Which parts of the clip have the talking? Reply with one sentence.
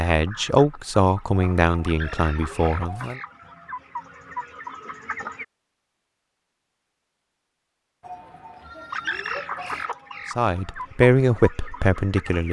You can hear the talking from 0.0 to 3.2 s and from 10.3 to 12.4 s.